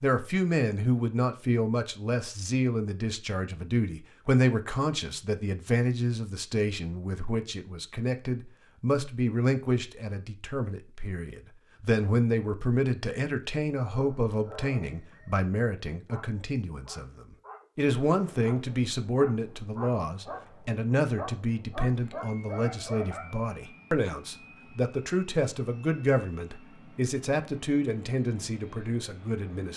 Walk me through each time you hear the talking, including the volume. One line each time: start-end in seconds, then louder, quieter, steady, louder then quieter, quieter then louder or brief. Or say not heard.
0.0-29.7 steady.